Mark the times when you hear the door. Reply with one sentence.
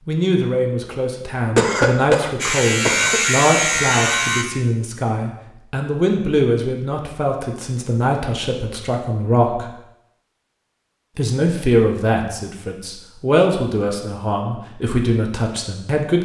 You can't hear the door here.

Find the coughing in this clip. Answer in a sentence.
The coughing can be heard from 1.6 to 3.2 s.